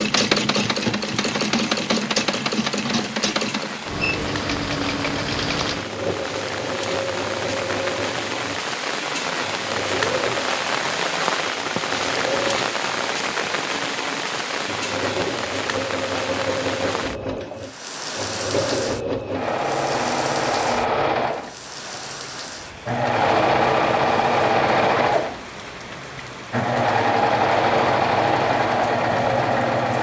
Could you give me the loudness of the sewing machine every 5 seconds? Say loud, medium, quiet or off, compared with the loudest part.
loud, medium, medium, medium, loud, loud.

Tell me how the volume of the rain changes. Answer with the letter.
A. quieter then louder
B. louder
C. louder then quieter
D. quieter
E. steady
C.